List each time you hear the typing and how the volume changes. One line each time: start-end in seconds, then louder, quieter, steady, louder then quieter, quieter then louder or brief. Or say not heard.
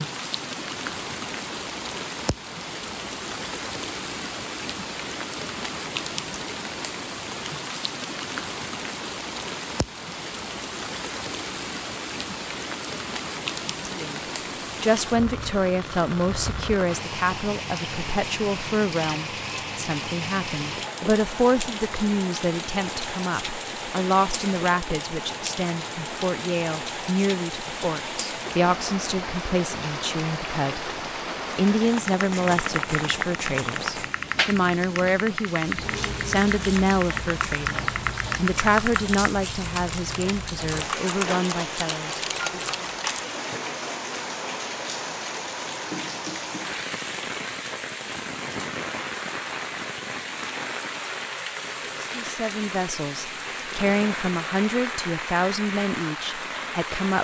32.0-43.2 steady.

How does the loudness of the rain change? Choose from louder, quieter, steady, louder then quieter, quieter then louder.
steady.